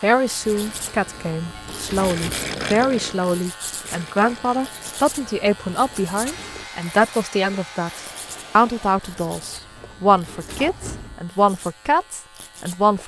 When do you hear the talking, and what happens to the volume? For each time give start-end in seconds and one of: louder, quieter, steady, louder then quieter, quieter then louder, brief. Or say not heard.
0.0-13.0 steady.